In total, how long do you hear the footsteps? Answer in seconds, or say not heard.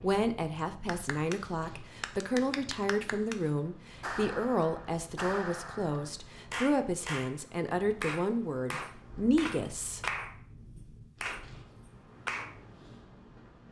not heard.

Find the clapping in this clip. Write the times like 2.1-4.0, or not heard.
0.8-7.3, 8.0-12.6.